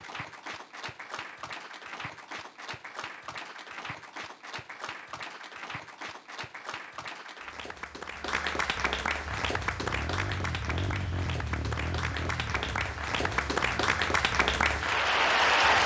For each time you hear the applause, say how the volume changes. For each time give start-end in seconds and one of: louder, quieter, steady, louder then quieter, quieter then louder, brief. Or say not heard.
0.0-15.8 louder.